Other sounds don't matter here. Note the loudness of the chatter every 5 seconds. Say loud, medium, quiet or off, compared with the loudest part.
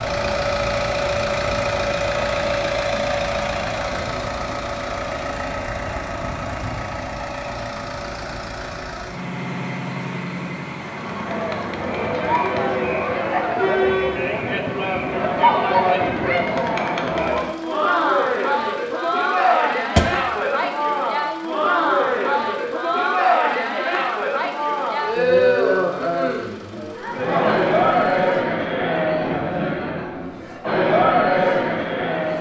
off, off, loud, loud, loud, loud, loud.